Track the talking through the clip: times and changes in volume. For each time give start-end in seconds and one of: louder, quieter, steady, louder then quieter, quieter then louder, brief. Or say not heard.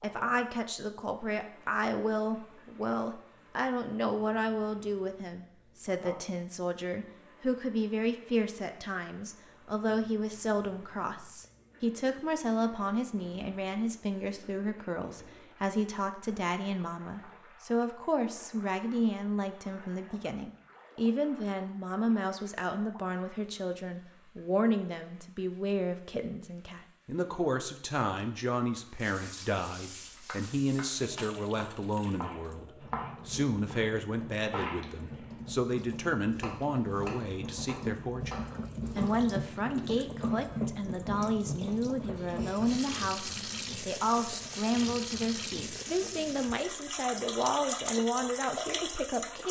0.0-49.4 steady.